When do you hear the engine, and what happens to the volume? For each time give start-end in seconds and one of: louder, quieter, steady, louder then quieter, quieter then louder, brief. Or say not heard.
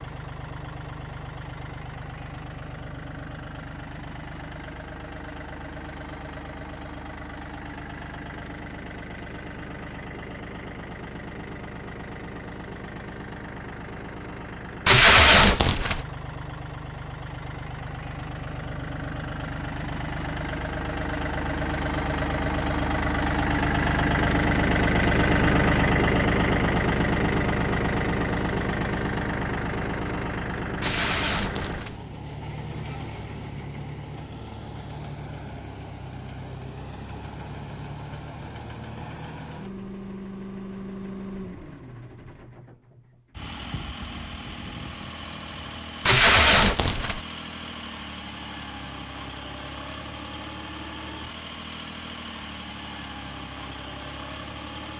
0.0-54.9 louder then quieter.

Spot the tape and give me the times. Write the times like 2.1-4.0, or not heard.
14.8-16.1, 30.8-32.0, 46.0-47.2.